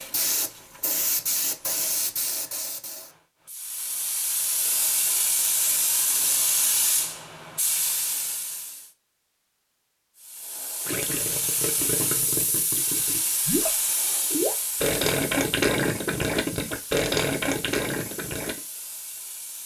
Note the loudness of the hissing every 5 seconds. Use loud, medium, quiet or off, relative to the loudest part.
loud, loud, loud, quiet.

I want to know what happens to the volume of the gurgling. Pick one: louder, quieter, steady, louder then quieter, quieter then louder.
louder.